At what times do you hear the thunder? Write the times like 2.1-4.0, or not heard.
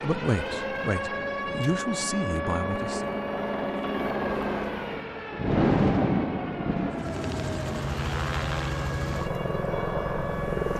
4.8-7.8.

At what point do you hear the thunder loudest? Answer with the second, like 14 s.
6 s.